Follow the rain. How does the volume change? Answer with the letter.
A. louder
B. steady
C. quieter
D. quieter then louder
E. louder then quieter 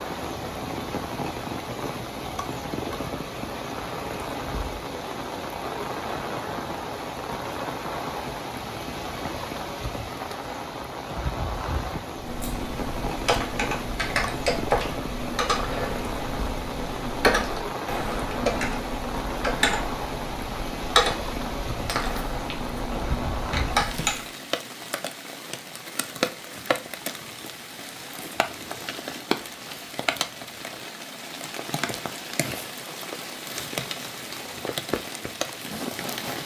B.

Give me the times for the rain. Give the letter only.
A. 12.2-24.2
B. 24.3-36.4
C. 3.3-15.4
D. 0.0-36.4
D.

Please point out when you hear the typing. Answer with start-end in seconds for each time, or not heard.
12.2-24.2.